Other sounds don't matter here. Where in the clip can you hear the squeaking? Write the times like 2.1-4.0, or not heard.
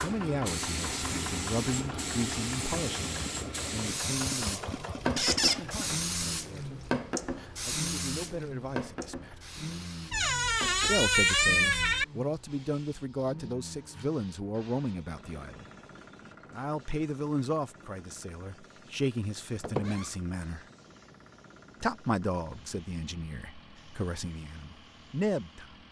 5.2-5.6, 10.1-12.1, 19.6-20.1.